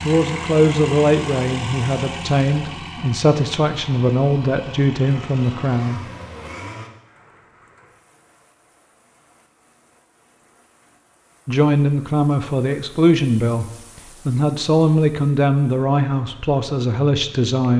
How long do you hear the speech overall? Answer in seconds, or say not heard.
12 s.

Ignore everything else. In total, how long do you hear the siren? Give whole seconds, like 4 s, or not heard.
not heard.